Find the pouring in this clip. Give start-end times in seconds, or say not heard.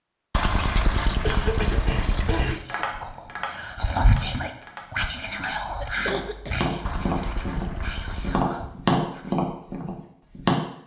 0.3-2.6, 6.8-8.4.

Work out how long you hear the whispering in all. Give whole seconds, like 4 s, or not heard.
7 s.